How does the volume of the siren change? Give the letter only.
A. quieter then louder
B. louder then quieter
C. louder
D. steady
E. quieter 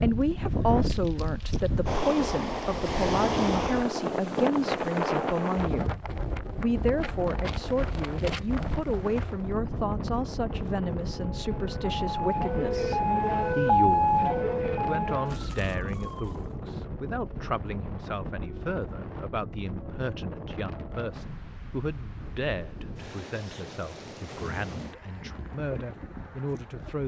B.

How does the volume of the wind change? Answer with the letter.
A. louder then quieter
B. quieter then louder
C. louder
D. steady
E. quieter
E.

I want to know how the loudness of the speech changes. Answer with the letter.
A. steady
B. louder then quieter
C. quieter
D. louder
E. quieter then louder
C.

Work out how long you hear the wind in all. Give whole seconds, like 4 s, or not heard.
27 s.